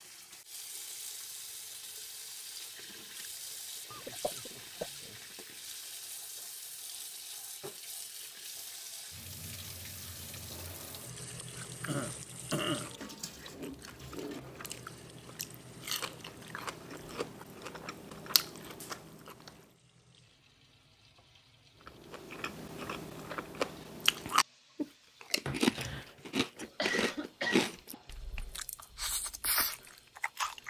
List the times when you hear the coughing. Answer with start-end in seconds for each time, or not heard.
3.9-5.2, 11.8-12.9, 26.8-27.8.